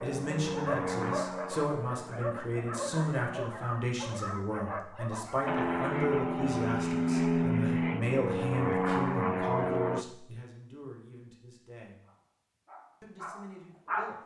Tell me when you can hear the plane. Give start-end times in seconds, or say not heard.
0.0-3.1, 5.5-10.1.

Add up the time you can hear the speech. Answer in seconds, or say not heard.
13 s.